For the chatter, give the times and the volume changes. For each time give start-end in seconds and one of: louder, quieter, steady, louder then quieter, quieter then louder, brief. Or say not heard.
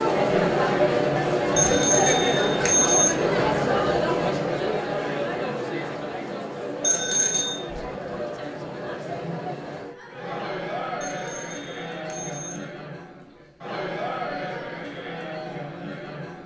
0.0-16.4 quieter.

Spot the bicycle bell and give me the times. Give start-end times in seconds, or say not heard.
1.6-3.1, 6.8-7.6, 11.0-12.7.